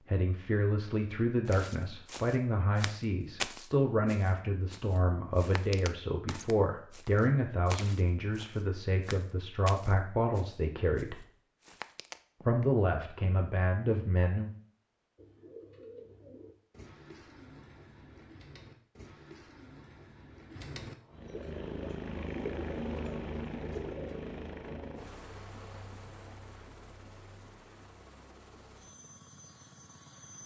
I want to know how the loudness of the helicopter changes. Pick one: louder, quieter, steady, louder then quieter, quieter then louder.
quieter.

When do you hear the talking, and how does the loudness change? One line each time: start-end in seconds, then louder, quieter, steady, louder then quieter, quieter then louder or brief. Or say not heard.
0.1-11.2 steady
12.4-14.5 brief.